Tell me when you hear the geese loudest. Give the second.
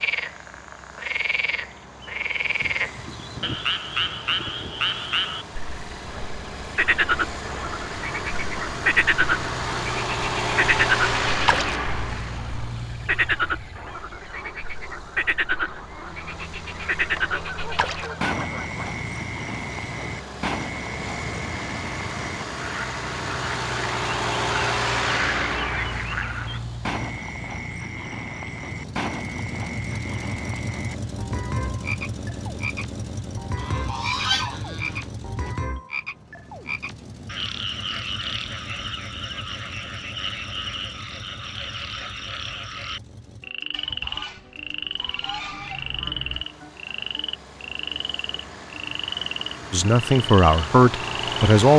34 s.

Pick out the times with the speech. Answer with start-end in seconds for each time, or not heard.
49.7-51.7.